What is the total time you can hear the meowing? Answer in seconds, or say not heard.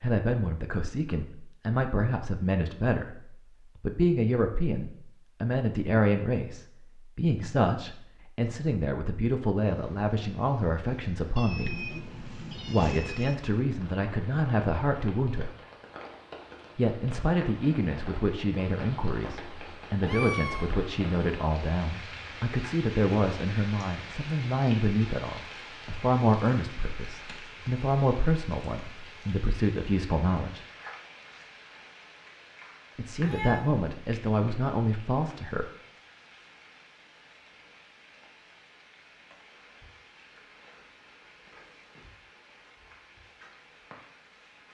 3 s.